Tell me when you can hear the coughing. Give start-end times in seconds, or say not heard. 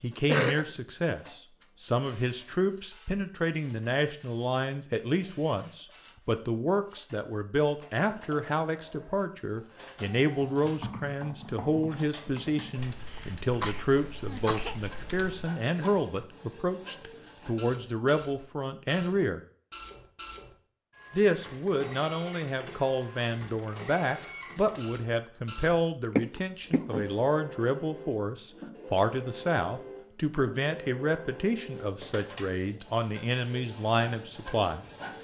0.2-0.7, 13.1-14.8, 26.1-27.1.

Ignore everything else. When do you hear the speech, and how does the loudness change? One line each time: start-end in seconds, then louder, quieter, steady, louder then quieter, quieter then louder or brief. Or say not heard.
0.0-19.4 steady
21.1-34.9 steady.